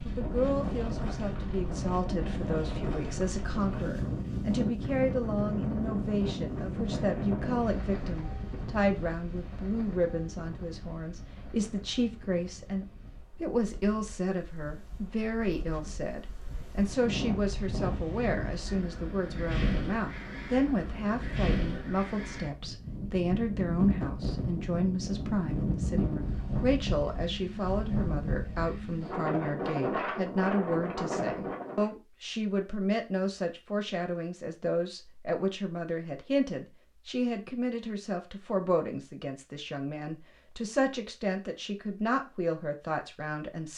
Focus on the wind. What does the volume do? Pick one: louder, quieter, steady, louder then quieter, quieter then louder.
quieter then louder.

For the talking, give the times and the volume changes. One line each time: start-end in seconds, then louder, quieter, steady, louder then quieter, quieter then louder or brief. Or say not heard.
0.1-43.7 steady.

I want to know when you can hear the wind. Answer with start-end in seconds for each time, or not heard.
0.0-31.9.